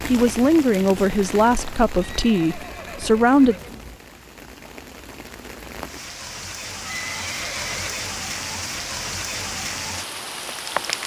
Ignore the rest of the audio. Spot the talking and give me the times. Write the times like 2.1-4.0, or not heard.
0.0-3.5.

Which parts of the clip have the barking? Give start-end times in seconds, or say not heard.
not heard.